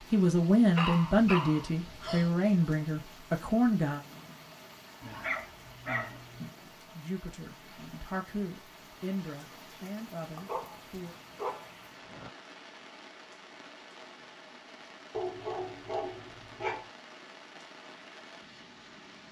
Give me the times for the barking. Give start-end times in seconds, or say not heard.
0.8-2.3, 5.0-6.5, 10.3-12.3, 15.1-16.9.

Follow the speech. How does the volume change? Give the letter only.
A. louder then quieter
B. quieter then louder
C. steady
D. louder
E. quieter
E.